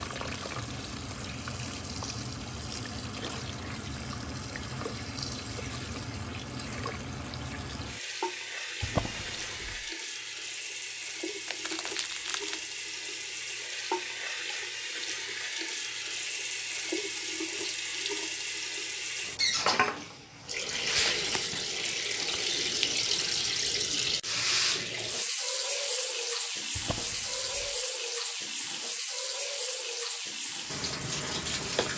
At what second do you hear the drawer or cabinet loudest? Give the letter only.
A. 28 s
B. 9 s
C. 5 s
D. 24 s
B.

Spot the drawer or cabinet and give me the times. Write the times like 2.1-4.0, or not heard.
8.8-9.8, 26.8-27.8.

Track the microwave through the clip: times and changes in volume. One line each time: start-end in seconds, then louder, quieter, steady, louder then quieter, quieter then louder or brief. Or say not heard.
not heard.